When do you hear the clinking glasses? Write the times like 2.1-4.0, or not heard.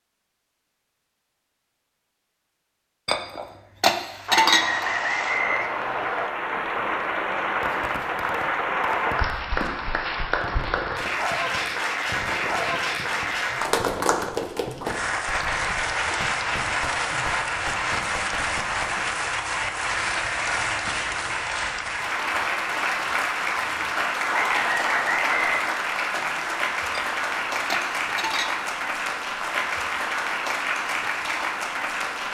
3.0-4.9, 26.9-28.6.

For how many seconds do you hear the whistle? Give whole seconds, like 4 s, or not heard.
3 s.